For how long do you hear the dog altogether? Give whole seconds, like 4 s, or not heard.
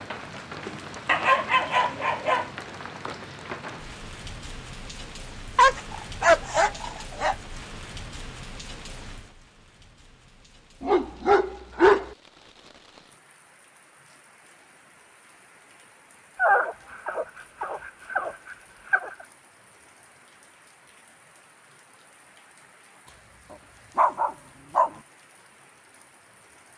9 s.